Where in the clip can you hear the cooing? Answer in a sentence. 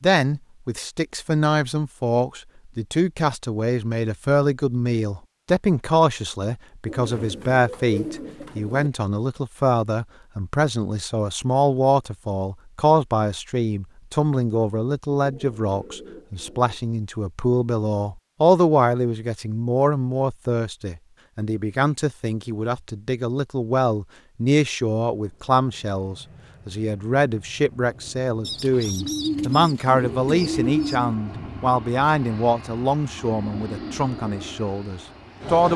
The cooing can be heard from 6.8 to 8.9 s, from 15.1 to 16.8 s and from 28.4 to 31.1 s.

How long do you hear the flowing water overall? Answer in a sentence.
You can't hear the flowing water here.